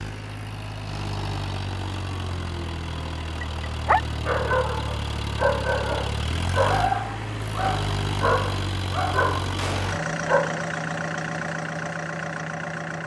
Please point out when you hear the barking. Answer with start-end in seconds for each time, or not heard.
3.2-10.7.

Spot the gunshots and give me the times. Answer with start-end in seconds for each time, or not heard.
9.6-10.1.